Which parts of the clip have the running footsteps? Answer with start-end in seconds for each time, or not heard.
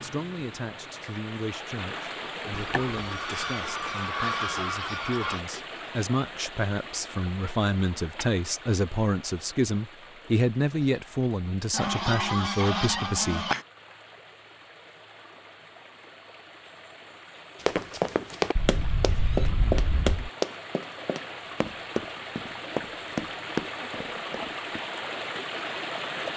17.6-24.8.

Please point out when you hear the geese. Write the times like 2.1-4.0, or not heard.
2.5-5.4, 11.7-13.6, 18.6-20.3.